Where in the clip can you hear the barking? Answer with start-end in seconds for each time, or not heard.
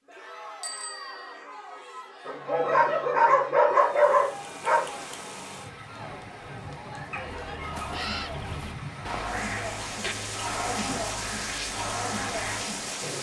2.2-5.0, 7.1-8.7.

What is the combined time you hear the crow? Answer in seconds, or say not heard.
5 s.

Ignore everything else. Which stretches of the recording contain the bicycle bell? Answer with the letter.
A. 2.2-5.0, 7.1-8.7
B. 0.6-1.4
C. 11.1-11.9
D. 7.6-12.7
B.